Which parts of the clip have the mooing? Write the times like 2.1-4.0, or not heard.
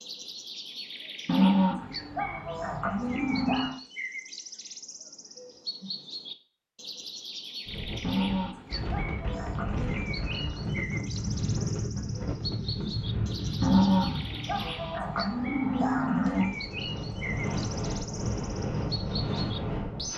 1.2-3.8, 8.0-9.9, 13.6-16.6.